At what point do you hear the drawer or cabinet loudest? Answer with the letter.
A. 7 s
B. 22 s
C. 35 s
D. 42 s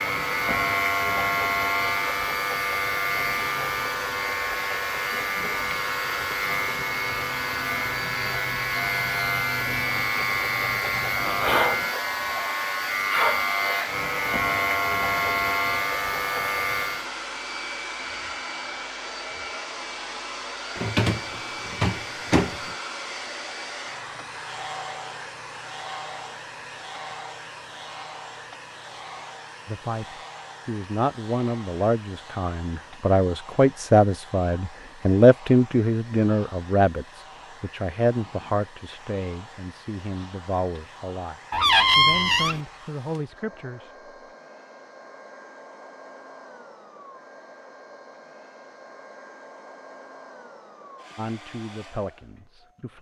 D.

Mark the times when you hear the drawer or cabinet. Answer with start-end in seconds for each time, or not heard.
20.8-22.7, 41.5-42.6.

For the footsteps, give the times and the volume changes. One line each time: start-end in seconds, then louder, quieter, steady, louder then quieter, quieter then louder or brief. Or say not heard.
not heard.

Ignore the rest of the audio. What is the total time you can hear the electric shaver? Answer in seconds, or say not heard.
17 s.